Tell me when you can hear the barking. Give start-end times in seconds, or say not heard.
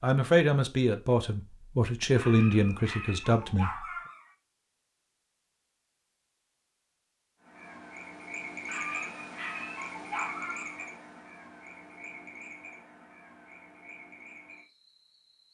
2.1-4.3, 8.7-10.9.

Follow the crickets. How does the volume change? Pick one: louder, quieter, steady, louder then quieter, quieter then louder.
quieter.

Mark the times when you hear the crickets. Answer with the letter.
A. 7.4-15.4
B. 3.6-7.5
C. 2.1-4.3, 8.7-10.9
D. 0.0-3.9
A.